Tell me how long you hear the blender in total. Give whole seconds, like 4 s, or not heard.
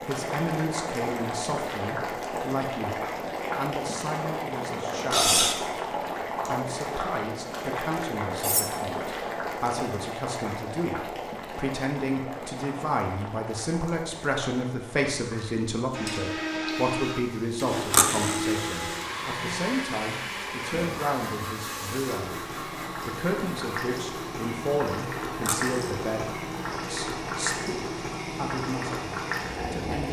14 s.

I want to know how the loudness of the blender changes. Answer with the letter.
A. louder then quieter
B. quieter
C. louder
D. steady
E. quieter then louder
B.